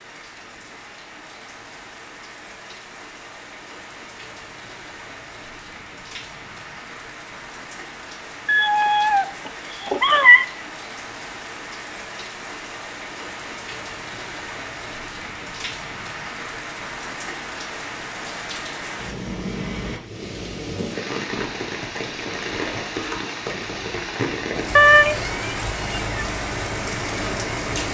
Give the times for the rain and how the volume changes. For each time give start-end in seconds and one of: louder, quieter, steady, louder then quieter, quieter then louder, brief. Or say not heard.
0.0-27.8 louder.